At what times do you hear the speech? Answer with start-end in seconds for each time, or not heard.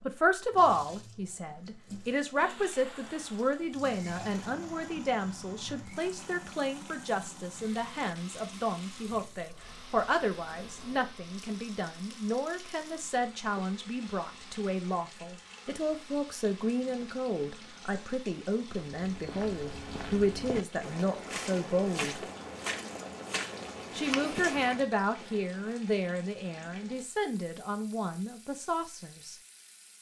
0.0-22.2, 23.9-29.4.